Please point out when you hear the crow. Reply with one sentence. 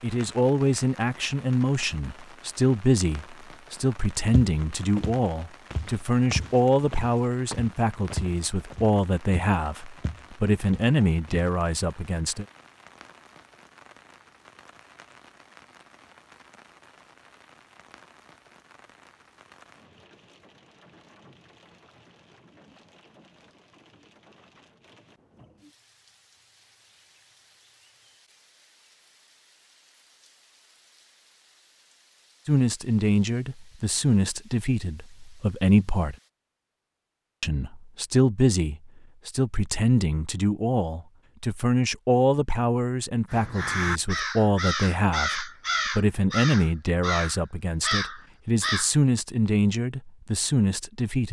The crow can be heard from 43.3 to 48.9 s.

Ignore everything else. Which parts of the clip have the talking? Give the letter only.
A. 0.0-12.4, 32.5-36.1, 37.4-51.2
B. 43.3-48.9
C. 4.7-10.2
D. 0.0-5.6
A.